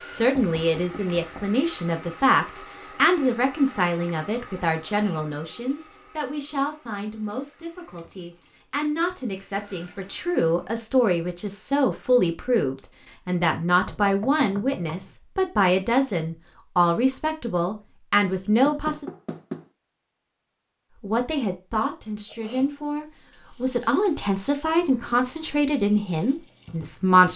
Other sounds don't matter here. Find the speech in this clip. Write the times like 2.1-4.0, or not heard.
0.0-19.1, 21.0-27.3.